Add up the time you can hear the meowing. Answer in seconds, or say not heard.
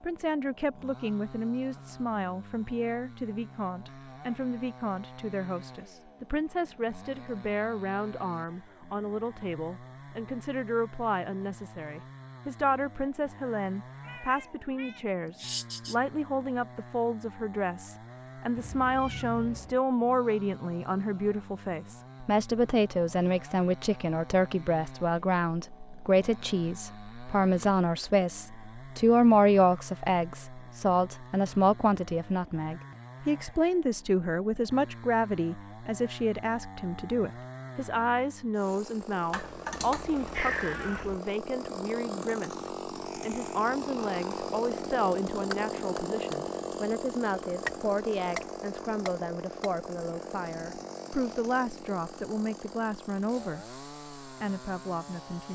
5 s.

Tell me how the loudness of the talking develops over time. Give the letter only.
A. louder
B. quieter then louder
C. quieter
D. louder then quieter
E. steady
D.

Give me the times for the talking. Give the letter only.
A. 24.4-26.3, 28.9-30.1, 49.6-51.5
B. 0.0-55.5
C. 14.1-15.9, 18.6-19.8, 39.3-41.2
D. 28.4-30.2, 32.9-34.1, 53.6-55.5
B.